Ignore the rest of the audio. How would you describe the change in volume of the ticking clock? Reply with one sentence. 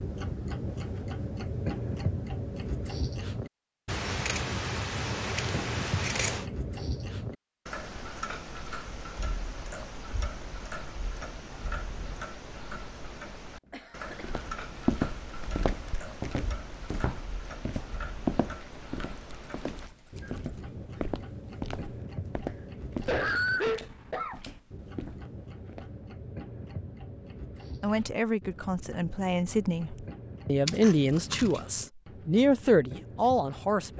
The volume of the ticking clock goes down.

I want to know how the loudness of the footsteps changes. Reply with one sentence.
The loudness of the footsteps goes down.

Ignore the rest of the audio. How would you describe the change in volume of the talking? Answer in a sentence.
The loudness of the talking goes up.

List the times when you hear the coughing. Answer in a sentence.
The coughing can be heard from 13.7 to 14.3 s and from 22.6 to 24.4 s.